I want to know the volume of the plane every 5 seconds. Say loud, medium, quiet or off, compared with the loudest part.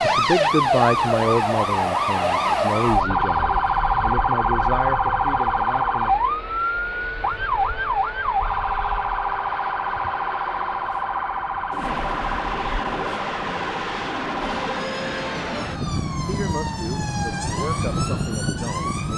medium, medium, loud, loud.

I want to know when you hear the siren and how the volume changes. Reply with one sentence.
The siren can be heard from 0.0 to 19.1 s, getting quieter.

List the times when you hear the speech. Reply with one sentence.
The speech can be heard from 0.0 to 6.2 s and from 16.2 to 19.1 s.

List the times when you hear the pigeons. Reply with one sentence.
The pigeons can be heard from 11.7 to 13.3 s.